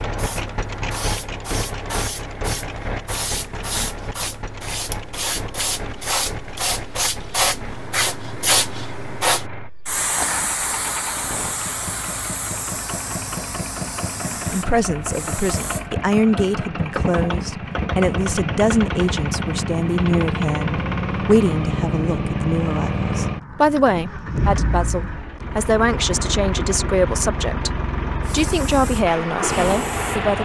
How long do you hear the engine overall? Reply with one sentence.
The engine can be heard for 30 seconds in total.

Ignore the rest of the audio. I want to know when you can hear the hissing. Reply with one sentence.
The hissing can be heard from 0.1 to 15.8 s and from 28.2 to 30.3 s.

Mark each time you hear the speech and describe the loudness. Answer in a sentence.
You can hear the speech from 14.5 to 30.3 s, at a steady volume.